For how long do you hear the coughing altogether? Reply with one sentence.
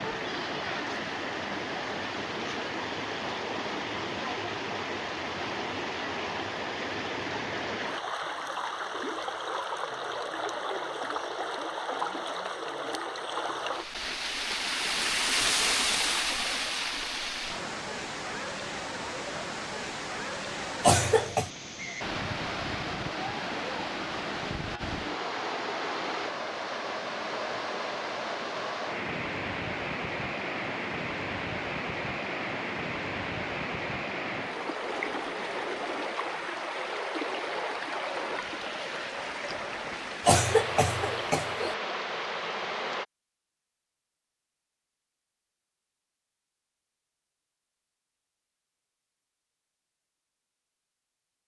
The coughing can be heard for 2 seconds in total.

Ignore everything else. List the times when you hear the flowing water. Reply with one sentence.
The flowing water can be heard from 0.0 to 43.0 s.